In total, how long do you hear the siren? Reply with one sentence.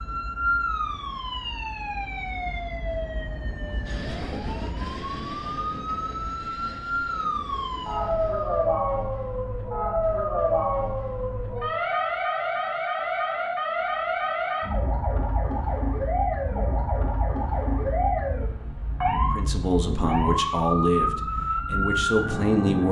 You can hear the siren for 23 seconds altogether.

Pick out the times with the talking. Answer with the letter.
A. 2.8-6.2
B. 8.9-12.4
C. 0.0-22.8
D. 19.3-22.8
D.